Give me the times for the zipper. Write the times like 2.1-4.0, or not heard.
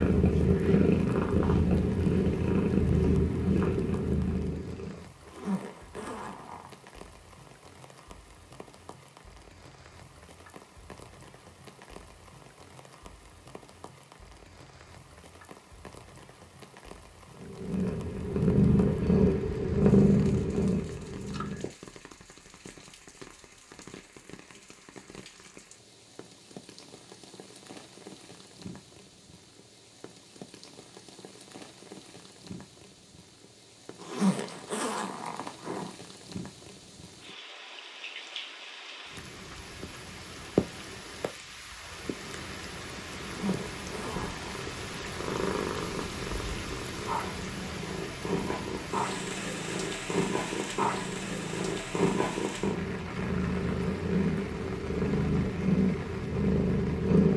5.2-6.7, 34.0-35.9, 43.2-44.5.